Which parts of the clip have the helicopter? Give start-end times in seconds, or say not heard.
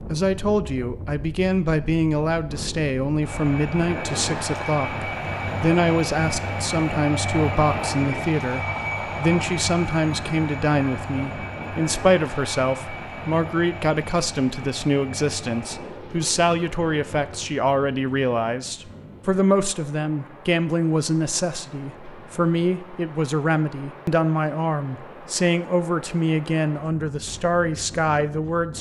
3.2-17.5.